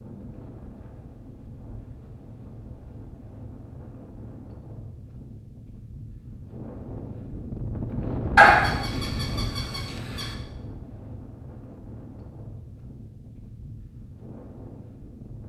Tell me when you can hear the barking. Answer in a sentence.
The barking can be heard from 8.3 to 10.2 s.